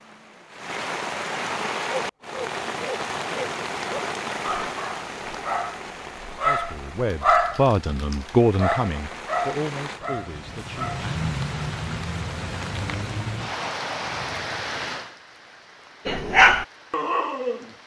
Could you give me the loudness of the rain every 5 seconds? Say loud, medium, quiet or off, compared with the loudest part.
loud, medium, loud, quiet.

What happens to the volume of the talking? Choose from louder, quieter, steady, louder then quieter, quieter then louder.
louder then quieter.